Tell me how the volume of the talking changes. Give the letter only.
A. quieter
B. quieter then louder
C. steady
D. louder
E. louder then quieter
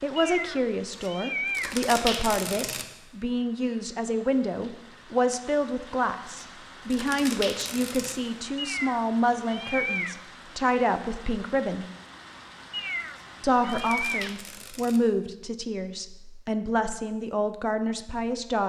C.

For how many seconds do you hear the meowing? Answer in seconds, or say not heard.
5 s.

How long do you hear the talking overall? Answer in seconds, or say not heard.
17 s.